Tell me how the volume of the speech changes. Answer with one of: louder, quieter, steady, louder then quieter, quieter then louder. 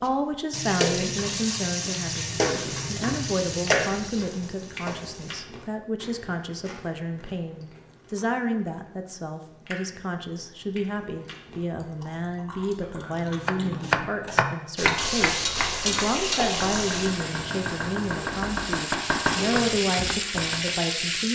steady.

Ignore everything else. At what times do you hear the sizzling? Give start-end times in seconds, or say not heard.
0.0-5.5, 14.8-21.3.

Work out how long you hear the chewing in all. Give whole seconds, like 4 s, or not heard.
11 s.